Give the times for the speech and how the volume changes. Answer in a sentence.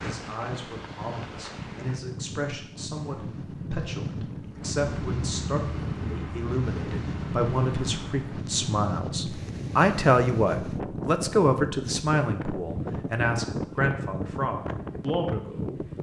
You can hear the speech from 0.0 to 15.8 s, getting louder then quieter.